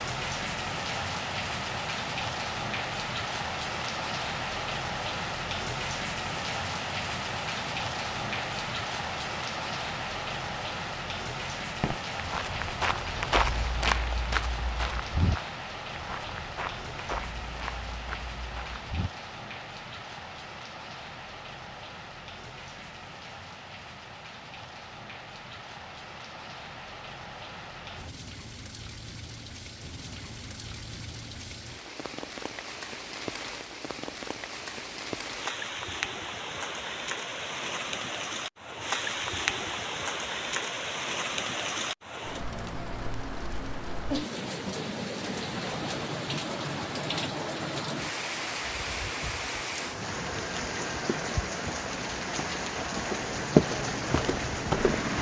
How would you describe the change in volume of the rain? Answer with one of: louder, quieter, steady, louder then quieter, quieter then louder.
quieter then louder.